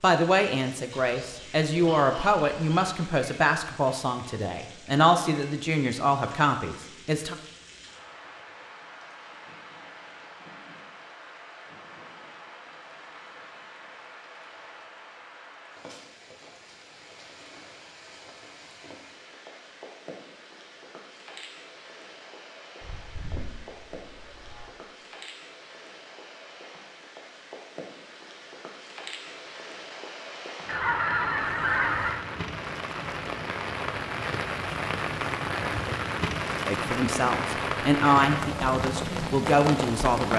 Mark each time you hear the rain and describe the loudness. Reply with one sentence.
The rain can be heard from 0.0 to 40.3 s, getting louder.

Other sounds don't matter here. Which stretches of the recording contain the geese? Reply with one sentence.
You can hear the geese from 0.9 to 3.0 s, from 22.8 to 24.7 s and from 30.6 to 32.2 s.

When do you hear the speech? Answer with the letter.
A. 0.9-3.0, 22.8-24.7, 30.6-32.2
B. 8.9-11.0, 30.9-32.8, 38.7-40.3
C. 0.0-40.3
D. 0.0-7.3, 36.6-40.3
D.